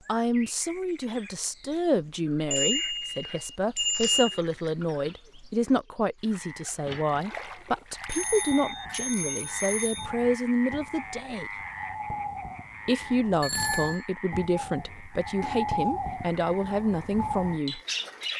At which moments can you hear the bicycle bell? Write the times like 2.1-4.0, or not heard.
2.5-4.4, 8.1-10.1, 13.4-14.1.